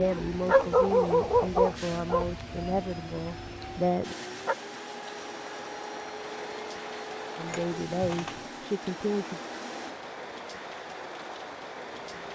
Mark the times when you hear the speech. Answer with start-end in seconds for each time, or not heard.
0.0-4.2, 7.3-9.4.